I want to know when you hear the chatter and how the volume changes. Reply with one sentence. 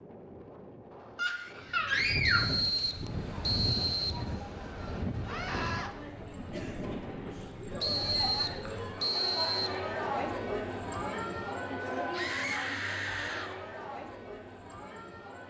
You can hear the chatter from 3.1 to 15.4 s, getting louder then quieter.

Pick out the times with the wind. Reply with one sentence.
The wind can be heard from 0.0 to 9.0 s.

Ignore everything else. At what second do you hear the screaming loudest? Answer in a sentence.
The loudest moment of the screaming is at 2 seconds.